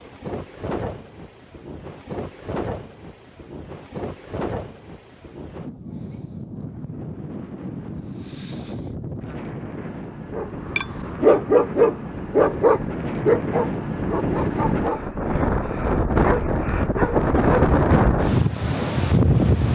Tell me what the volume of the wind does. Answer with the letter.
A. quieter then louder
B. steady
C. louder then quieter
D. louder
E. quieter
D.